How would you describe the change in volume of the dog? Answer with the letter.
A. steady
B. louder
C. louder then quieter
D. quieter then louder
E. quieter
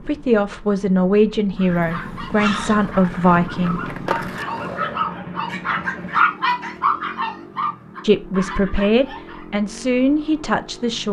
C.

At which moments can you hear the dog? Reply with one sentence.
The dog can be heard from 1.6 to 9.4 s.